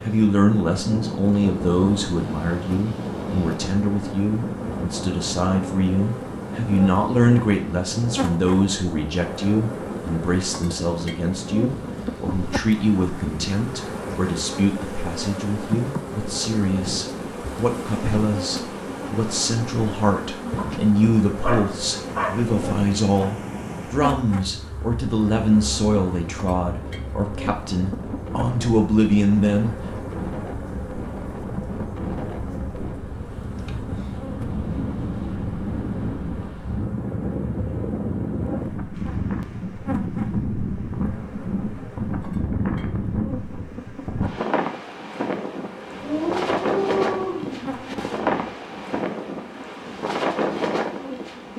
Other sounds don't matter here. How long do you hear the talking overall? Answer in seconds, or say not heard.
30 s.